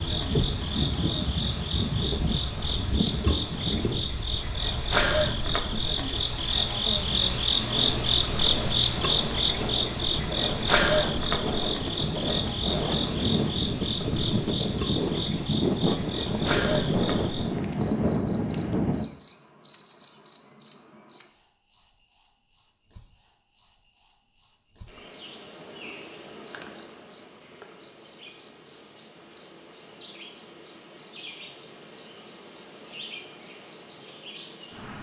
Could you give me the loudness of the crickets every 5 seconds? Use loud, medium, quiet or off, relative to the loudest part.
medium, loud, loud, medium, medium, medium, medium.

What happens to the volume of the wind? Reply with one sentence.
The loudness of the wind goes down, then up.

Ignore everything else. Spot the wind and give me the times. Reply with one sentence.
The wind can be heard from 0.0 to 19.1 s.